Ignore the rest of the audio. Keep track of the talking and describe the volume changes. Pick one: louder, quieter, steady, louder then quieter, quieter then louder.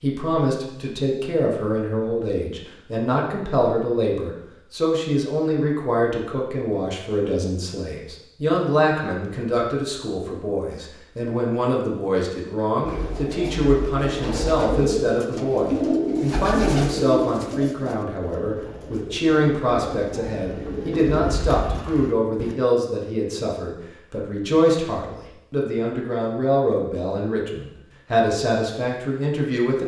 steady.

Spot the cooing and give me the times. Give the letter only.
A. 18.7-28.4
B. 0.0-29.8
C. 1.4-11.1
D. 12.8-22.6
D.